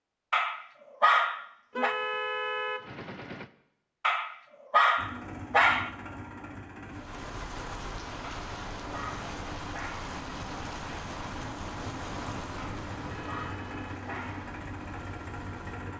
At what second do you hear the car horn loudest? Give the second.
2 s.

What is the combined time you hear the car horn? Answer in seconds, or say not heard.
3 s.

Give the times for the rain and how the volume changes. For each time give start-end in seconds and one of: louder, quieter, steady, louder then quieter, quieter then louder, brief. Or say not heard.
6.8-15.9 quieter.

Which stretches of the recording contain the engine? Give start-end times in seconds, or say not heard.
5.0-15.9.